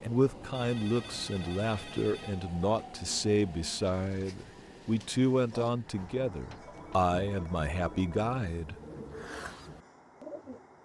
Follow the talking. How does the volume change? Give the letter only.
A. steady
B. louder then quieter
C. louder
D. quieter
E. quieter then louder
A.